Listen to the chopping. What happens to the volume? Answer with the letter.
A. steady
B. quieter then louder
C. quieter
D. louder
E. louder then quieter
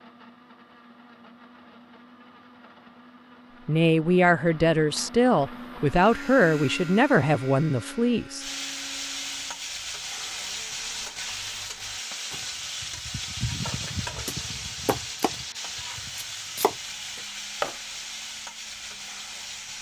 B.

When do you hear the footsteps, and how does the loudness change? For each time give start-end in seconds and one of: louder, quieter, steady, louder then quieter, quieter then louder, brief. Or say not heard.
not heard.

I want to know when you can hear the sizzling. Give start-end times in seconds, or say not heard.
8.3-19.7.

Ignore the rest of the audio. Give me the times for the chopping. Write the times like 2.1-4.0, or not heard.
12.3-17.8.